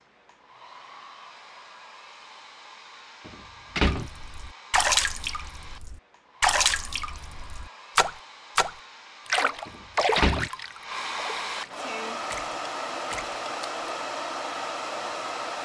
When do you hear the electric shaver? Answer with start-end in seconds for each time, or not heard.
not heard.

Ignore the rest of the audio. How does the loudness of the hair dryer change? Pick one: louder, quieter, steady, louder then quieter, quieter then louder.
louder.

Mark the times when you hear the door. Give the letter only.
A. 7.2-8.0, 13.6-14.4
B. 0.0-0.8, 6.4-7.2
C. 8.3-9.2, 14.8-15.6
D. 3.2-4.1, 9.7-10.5
D.